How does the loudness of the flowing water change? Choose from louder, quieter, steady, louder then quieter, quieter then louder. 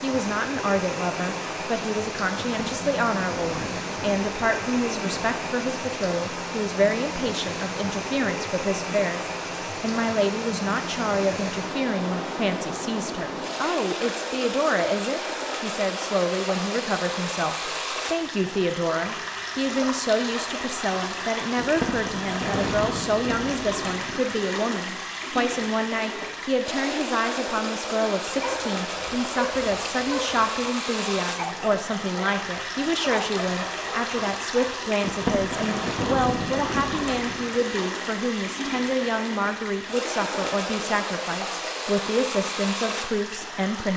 steady.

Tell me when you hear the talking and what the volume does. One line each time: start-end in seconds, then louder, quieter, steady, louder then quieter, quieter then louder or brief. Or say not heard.
0.0-43.9 steady.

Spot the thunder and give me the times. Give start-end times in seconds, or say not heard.
2.5-5.5, 21.6-24.2, 35.0-37.5.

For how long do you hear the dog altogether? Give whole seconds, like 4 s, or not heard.
6 s.